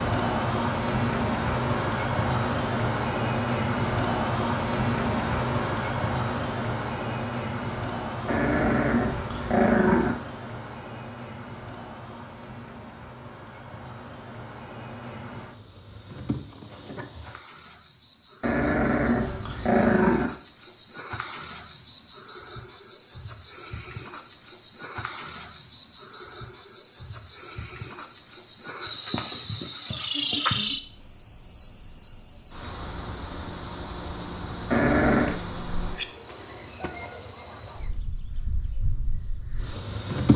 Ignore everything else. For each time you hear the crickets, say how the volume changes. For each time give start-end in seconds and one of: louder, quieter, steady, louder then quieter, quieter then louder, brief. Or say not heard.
0.0-40.3 quieter then louder.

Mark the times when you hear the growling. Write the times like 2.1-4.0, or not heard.
8.2-10.2, 18.4-20.3, 34.7-35.4.